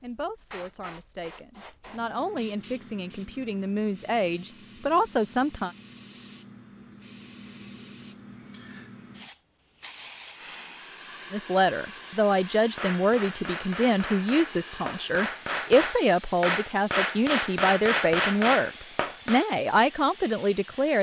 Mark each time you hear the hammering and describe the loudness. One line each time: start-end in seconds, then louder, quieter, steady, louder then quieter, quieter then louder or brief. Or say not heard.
12.8-19.4 louder.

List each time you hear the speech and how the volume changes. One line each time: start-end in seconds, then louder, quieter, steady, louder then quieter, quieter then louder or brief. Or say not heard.
0.0-5.7 louder
11.3-20.9 steady.